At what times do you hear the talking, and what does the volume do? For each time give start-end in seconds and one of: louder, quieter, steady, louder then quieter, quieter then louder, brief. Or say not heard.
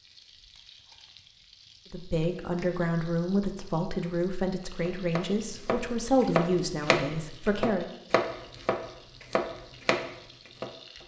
1.9-7.9 steady.